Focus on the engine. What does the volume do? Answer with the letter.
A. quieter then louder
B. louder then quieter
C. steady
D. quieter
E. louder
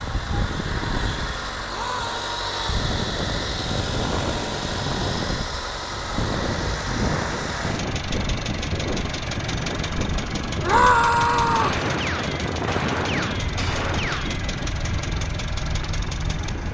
C.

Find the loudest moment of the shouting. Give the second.
11 s.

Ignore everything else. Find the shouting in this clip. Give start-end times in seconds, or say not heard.
1.6-2.6, 10.6-11.8.